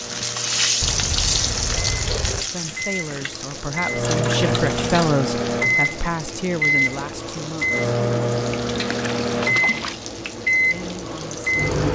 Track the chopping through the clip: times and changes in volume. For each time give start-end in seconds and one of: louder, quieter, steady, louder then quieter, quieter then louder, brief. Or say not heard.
not heard.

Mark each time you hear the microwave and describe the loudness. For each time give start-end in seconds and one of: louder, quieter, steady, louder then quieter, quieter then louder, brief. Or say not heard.
0.0-11.9 louder.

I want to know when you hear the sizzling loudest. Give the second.
1 s.